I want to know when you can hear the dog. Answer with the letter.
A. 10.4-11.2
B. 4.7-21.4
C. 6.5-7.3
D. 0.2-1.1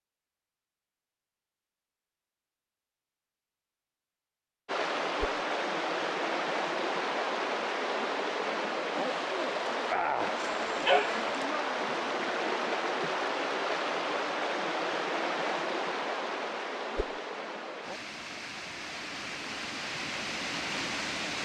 A.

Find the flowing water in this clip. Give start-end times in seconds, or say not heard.
4.7-21.4.